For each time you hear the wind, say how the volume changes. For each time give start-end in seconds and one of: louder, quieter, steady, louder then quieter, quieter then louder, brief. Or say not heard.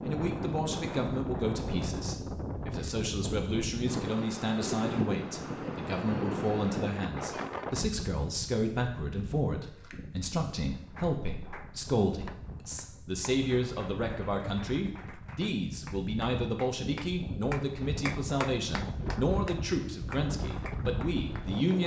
0.0-21.8 quieter then louder.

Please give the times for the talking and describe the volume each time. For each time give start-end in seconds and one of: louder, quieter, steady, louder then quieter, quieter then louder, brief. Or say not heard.
0.1-21.8 steady.